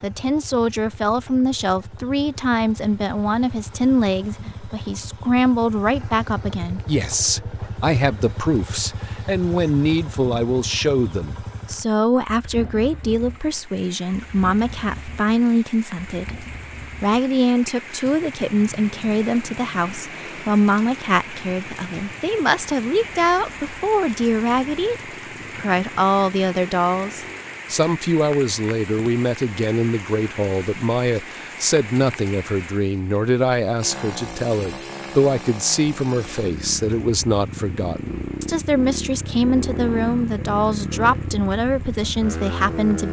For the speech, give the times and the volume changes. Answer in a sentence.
You can hear the speech from 0.0 to 24.9 s, at a steady volume; and from 25.6 to 43.0 s, at a steady volume.